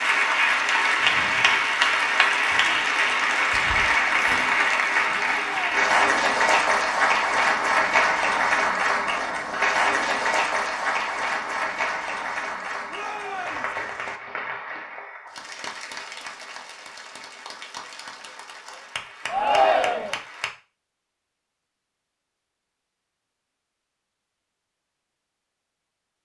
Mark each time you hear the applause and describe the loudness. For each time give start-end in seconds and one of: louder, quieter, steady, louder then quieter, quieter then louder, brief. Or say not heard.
0.0-20.5 quieter.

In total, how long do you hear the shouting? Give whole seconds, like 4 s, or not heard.
2 s.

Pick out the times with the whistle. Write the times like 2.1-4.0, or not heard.
not heard.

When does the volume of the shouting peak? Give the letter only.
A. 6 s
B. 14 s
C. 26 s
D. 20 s
D.